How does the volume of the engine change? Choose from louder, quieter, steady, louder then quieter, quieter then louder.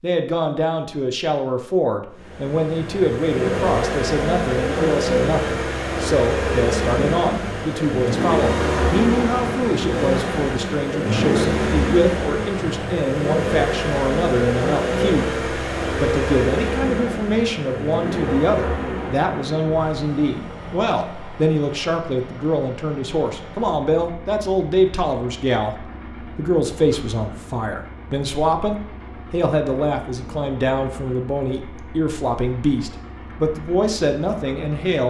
quieter.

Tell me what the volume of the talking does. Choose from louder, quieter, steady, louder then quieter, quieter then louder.
steady.